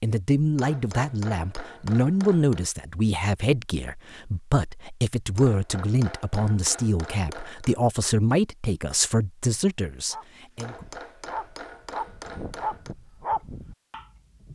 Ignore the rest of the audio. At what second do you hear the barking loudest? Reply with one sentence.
The volume of the barking peaks at 13 seconds.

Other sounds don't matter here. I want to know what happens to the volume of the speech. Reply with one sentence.
The loudness of the speech stays about the same.